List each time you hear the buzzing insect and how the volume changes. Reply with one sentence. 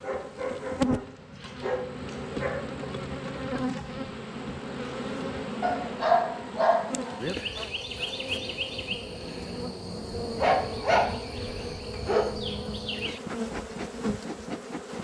The buzzing insect can be heard from 0.0 to 14.9 s, at a steady volume.